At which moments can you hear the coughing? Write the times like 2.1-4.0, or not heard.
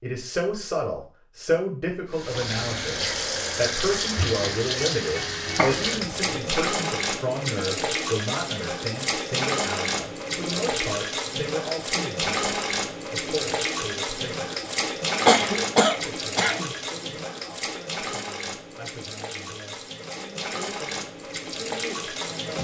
5.5-6.3, 15.2-16.7.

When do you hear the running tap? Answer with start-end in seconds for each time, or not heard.
2.1-22.5.